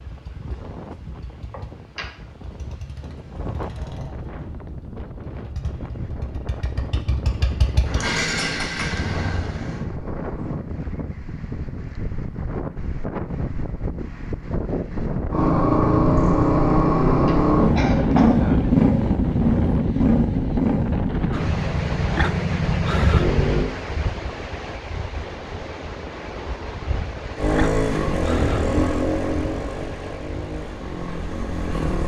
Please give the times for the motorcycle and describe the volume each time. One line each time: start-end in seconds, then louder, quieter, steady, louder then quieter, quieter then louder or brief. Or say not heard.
0.0-10.7 louder
15.3-23.7 quieter
27.4-32.0 quieter.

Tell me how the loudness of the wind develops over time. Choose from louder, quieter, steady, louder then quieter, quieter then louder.
louder then quieter.